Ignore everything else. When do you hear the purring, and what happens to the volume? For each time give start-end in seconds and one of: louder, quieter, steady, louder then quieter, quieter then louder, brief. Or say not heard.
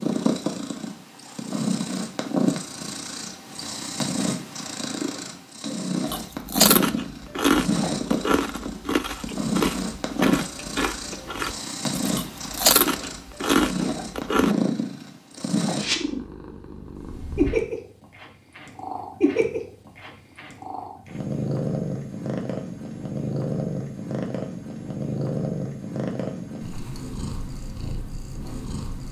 0.0-29.0 steady.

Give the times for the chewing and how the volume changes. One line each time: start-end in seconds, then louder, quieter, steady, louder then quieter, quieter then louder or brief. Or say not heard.
6.0-14.6 quieter then louder.